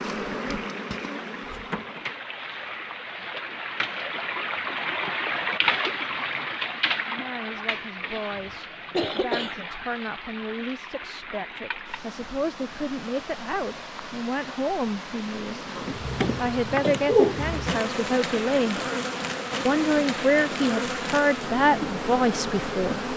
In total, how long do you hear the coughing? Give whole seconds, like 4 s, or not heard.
3 s.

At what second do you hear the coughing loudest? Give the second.
17 s.